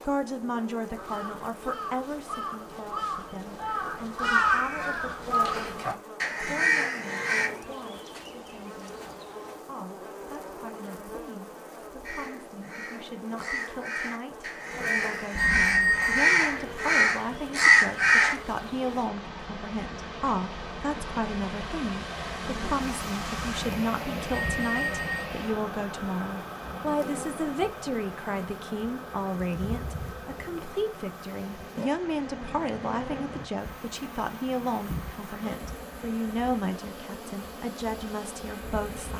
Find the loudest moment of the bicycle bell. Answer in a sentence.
The loudest moment of the bicycle bell is at 16 seconds.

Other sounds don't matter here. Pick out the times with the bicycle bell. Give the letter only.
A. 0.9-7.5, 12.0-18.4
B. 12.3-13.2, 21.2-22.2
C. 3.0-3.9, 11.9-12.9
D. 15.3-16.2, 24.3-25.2
D.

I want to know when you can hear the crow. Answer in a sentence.
You can hear the crow from 0.9 to 7.5 s and from 12.0 to 18.4 s.